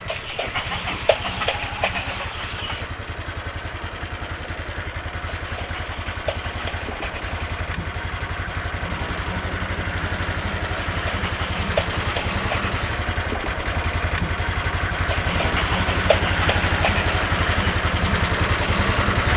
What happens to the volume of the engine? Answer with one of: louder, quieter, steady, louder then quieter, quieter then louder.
louder.